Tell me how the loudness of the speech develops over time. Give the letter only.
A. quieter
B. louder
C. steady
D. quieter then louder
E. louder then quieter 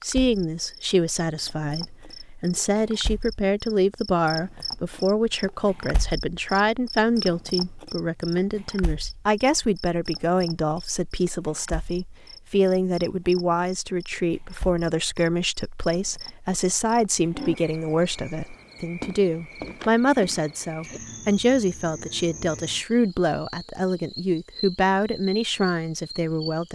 C.